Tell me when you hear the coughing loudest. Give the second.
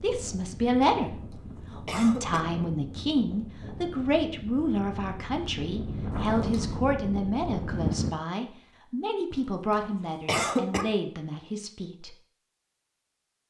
10 s.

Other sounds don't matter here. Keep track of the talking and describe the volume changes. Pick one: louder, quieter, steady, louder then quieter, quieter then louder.
quieter.